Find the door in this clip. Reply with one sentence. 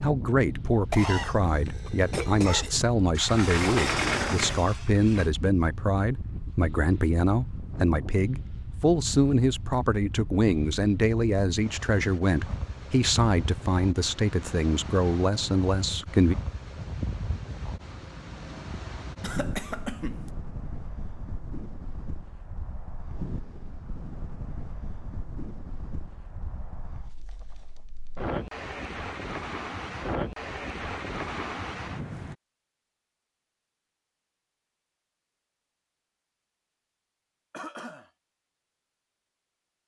You can hear the door from 3.1 to 5.3 s.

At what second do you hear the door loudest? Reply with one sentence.
The volume of the door peaks at 4 seconds.